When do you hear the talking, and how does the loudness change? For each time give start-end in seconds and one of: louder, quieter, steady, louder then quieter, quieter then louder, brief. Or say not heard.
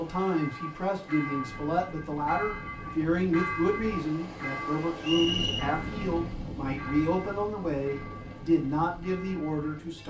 0.0-10.0 steady.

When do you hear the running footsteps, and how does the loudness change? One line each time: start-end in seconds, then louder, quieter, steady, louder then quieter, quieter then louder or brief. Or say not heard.
not heard.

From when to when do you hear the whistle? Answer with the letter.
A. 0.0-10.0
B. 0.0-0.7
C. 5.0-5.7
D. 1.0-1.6
C.